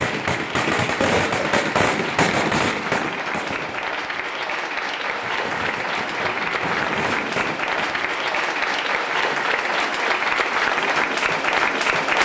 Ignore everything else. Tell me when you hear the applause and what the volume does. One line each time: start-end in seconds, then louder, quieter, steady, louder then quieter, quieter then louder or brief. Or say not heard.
0.0-12.1 louder.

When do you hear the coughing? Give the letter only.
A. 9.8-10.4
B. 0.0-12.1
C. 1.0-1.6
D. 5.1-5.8
C.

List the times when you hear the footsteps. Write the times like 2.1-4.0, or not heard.
not heard.